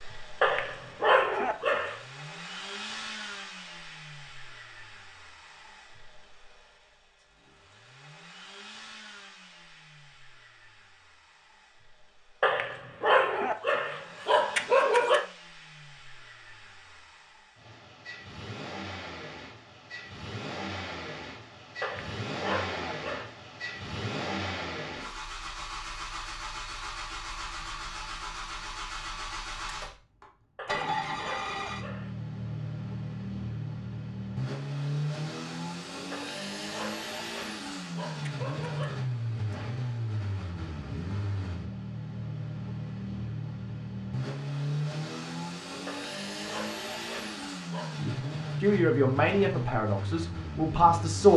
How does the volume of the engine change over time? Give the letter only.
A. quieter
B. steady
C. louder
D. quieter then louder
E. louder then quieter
C.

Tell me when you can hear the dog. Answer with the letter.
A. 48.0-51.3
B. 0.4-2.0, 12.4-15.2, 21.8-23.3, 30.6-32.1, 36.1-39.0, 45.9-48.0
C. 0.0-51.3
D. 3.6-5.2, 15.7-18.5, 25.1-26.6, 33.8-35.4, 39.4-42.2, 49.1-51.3
B.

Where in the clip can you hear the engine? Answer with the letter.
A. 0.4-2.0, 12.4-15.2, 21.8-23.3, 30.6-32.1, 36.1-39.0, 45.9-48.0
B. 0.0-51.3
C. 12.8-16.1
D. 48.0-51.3
B.